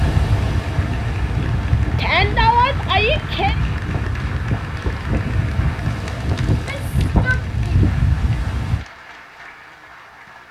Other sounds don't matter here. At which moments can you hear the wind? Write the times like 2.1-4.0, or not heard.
0.0-8.8.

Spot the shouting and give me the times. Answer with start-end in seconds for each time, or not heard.
1.9-3.6, 6.5-8.0.